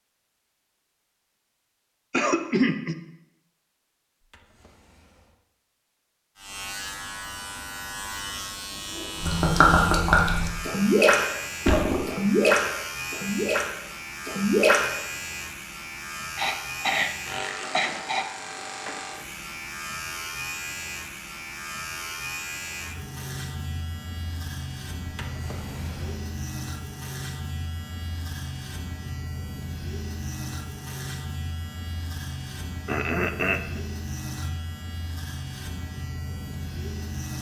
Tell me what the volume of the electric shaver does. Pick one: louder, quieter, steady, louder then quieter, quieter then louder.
steady.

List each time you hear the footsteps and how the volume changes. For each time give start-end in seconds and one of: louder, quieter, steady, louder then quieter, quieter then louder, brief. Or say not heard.
not heard.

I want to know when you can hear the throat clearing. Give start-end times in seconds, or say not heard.
2.1-3.0, 16.4-18.3, 32.9-33.8.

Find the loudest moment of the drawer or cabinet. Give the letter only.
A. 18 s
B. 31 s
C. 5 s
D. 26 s
D.